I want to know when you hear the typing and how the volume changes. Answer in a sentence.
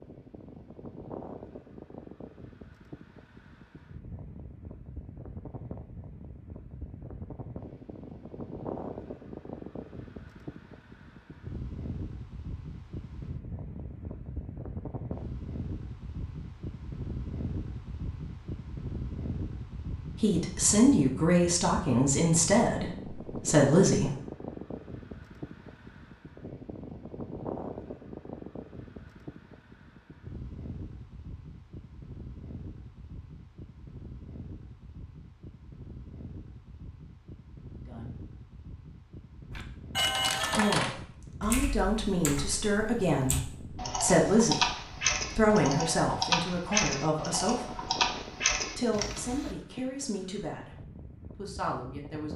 You can hear the typing from 39.5 to 49.5 s, getting quieter then louder.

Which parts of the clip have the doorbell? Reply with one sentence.
You can hear the doorbell from 40.0 to 40.8 s.